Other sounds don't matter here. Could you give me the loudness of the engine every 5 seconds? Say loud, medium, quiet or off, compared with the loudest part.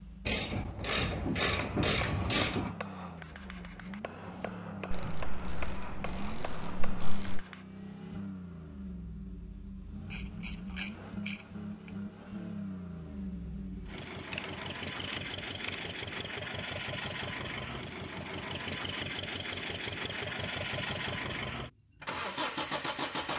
medium, medium, medium, loud, loud.